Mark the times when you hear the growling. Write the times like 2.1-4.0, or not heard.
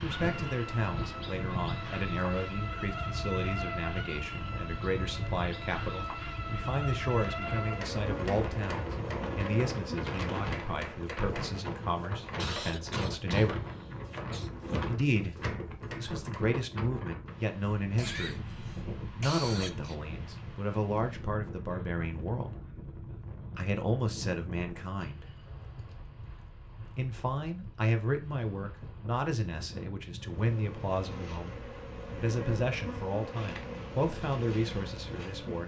not heard.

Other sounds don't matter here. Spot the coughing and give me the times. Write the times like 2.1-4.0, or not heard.
12.3-14.5, 17.9-19.9.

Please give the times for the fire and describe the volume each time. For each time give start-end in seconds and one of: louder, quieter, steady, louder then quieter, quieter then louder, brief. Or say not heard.
not heard.